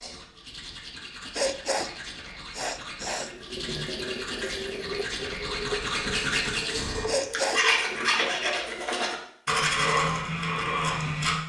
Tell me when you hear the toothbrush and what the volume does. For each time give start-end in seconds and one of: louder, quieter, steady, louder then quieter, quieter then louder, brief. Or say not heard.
0.0-11.4 louder.